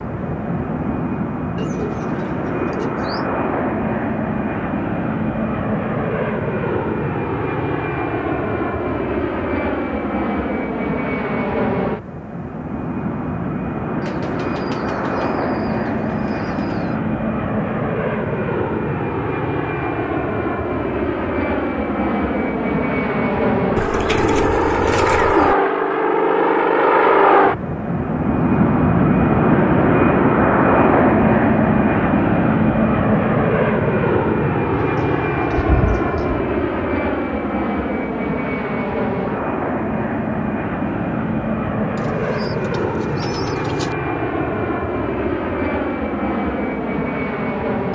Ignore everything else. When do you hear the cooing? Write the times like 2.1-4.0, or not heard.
1.6-3.3, 14.0-17.0, 23.8-25.6, 34.8-36.4, 42.0-44.0.